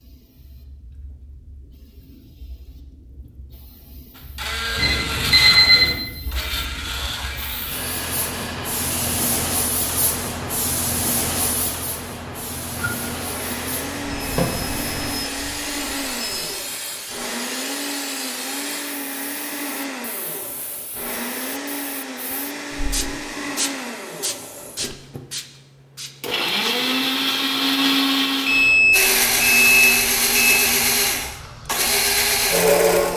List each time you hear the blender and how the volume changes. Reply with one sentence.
You can hear the blender from 4.2 to 9.2 s, getting quieter; and from 12.8 to 33.1 s, getting louder.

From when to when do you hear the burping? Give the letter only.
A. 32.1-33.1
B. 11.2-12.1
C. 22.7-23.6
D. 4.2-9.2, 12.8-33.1
C.